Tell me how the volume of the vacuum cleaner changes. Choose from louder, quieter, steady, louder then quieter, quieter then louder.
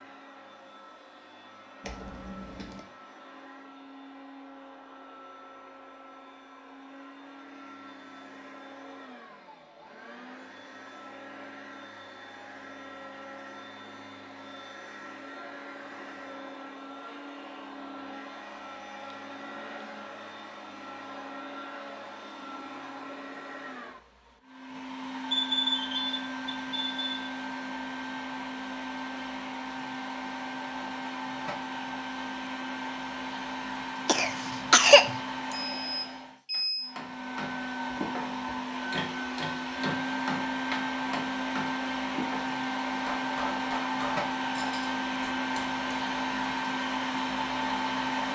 louder.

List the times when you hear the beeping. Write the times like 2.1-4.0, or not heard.
1.8-2.8, 25.3-27.3, 35.5-36.9.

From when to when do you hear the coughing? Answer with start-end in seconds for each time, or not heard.
34.0-35.1.